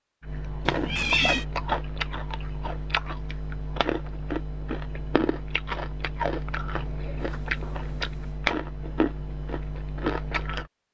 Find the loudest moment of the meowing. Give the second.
1 s.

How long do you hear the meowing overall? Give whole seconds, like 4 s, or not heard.
2 s.